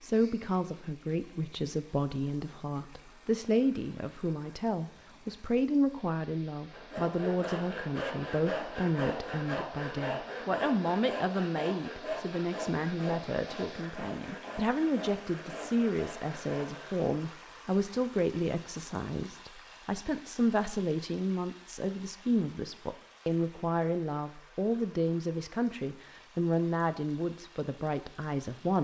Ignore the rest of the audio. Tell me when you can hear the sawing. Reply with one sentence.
You can hear the sawing from 6.7 to 17.1 s.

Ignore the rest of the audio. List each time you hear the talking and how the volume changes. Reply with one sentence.
You can hear the talking from 0.0 to 28.7 s, at a steady volume.